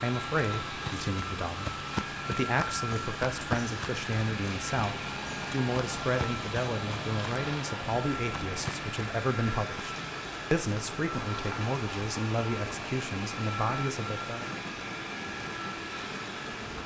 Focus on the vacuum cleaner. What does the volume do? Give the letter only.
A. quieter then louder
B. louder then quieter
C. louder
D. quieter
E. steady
E.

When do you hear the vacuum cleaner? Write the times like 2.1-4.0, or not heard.
0.0-16.8.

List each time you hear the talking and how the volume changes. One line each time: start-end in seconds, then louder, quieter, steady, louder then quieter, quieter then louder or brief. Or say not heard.
0.0-14.6 steady.